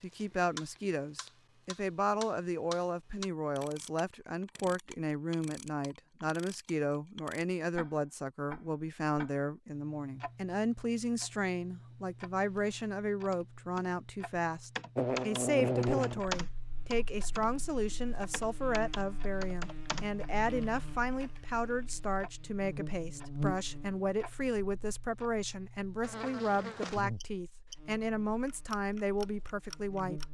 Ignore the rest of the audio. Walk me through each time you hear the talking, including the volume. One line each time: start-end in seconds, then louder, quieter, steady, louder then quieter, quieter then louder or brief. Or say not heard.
0.0-30.2 steady.